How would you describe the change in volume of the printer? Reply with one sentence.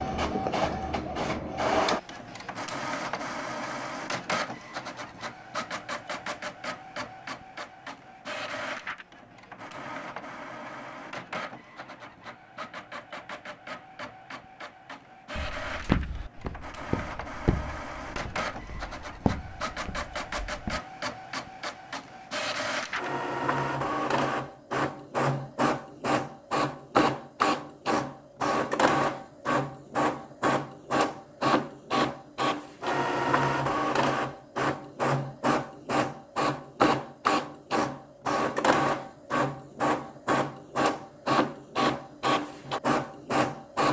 The volume of the printer goes down, then up.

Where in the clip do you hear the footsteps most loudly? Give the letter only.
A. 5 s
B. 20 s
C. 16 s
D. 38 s
C.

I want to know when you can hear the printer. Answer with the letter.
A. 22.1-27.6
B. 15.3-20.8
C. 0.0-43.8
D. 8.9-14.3
C.